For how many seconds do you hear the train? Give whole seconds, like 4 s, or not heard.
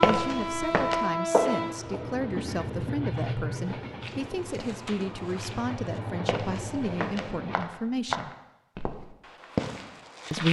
8 s.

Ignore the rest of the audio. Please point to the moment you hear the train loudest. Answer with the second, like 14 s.
1 s.